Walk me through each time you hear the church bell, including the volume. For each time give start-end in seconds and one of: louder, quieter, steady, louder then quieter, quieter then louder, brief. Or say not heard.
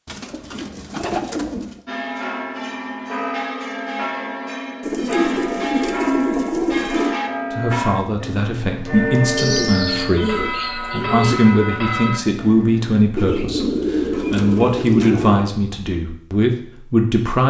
1.9-13.0 steady.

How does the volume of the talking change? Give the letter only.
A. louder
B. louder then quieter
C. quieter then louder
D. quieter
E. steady
E.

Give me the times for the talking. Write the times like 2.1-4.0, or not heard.
7.5-17.4.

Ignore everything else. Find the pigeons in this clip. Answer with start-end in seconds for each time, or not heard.
0.1-1.8, 4.8-7.2, 9.3-11.4, 13.2-15.5.